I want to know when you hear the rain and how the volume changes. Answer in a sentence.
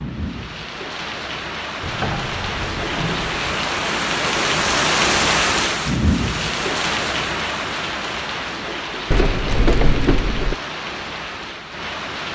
You can hear the rain from 0.0 to 12.3 s, getting louder then quieter.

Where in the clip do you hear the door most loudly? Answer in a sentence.
The volume of the door peaks at 10 seconds.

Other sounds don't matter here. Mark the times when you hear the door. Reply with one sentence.
The door can be heard from 1.8 to 3.5 s and from 9.1 to 10.6 s.